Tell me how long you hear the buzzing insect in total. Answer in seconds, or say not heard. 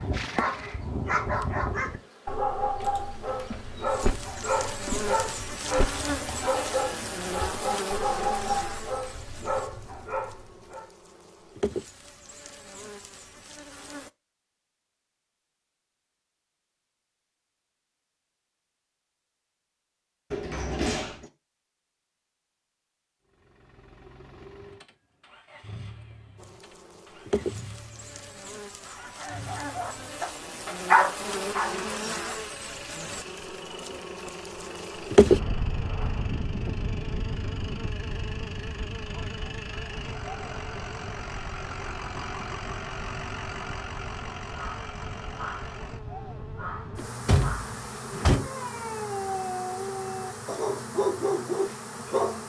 40 s.